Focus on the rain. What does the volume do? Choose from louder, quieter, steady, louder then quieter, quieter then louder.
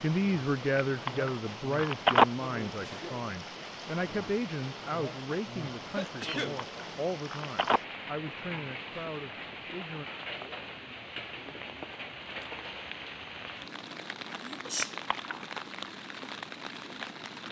steady.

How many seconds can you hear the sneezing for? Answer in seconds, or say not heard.
2 s.